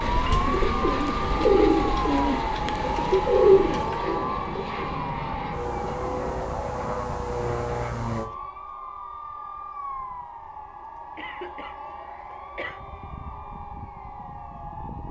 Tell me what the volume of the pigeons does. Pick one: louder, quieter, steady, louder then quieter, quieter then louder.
louder then quieter.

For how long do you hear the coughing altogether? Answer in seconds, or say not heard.
2 s.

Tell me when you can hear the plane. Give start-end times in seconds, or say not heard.
0.0-8.3.